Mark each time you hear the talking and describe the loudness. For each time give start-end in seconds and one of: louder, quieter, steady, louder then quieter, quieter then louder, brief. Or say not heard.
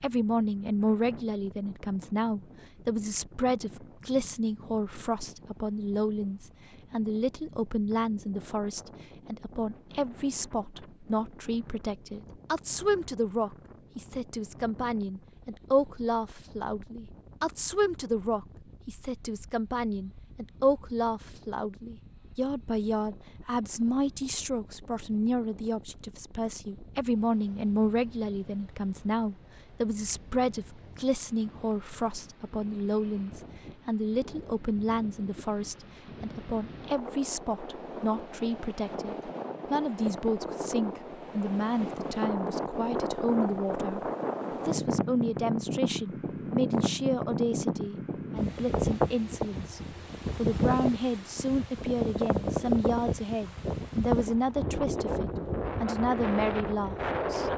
0.0-57.5 steady.